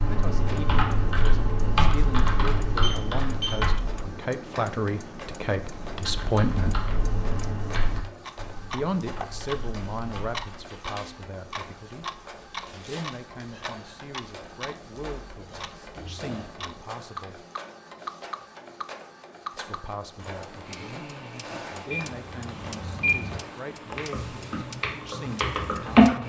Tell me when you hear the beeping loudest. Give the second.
23 s.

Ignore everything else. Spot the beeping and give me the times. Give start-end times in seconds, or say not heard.
2.8-3.6, 21.9-23.4.